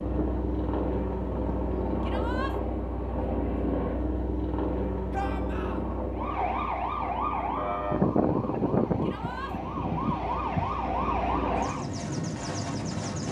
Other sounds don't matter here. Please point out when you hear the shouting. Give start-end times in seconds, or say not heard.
2.0-2.5, 5.1-5.8, 9.0-9.6.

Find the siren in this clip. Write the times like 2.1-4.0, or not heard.
0.0-1.6, 6.2-11.9.